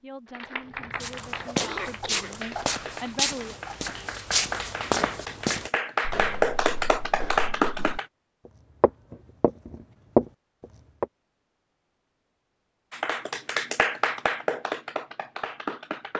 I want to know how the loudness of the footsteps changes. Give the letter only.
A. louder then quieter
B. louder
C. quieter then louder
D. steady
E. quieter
C.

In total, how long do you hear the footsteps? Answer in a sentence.
The footsteps can be heard for 10 seconds in total.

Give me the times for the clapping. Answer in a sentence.
The clapping can be heard from 0.2 to 8.1 s and from 12.9 to 16.1 s.